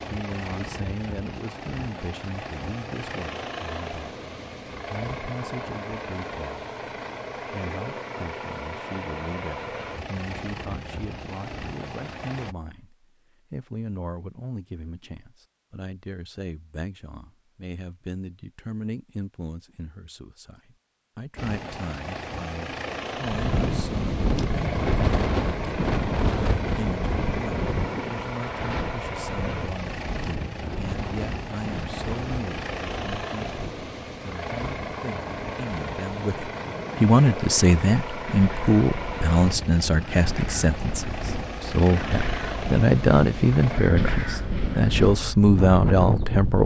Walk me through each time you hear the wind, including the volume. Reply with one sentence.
The wind can be heard from 23.2 to 46.6 s, getting quieter then louder.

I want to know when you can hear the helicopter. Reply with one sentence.
The helicopter can be heard from 0.0 to 12.6 s and from 21.4 to 43.9 s.